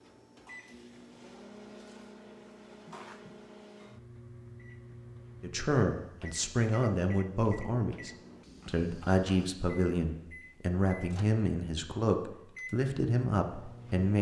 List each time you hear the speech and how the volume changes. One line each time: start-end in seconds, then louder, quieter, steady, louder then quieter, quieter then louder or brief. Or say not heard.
5.4-14.1 steady.